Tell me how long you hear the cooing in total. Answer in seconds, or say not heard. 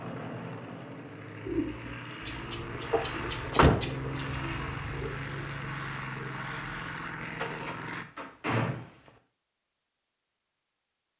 6 s.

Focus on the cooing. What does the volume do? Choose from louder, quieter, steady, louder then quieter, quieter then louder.
quieter.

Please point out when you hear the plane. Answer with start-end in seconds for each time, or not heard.
0.0-8.1.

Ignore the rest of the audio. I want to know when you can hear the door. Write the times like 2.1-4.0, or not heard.
2.9-4.0, 7.3-9.1.